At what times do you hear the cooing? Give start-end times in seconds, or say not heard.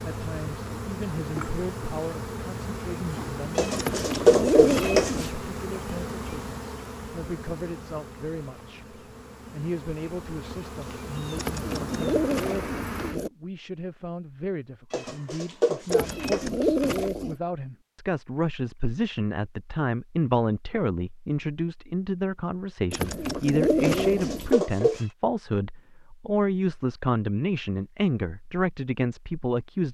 3.8-5.3, 11.3-13.3, 15.8-17.4, 22.9-24.6.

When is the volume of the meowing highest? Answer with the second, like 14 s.
4 s.